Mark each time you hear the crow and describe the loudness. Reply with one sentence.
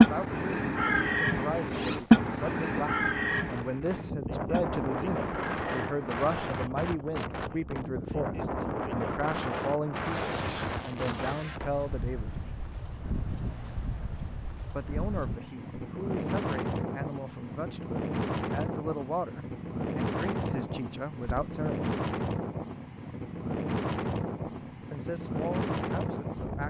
You can hear the crow from 0.0 to 6.2 s, getting louder then quieter.